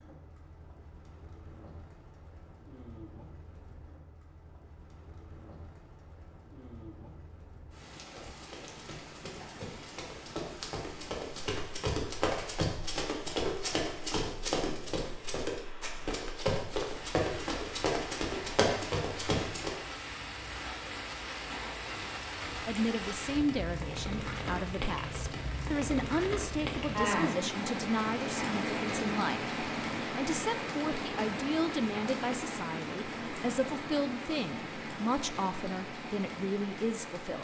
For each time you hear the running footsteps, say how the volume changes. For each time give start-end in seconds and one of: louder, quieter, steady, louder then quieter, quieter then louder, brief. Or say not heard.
8.1-19.8 louder.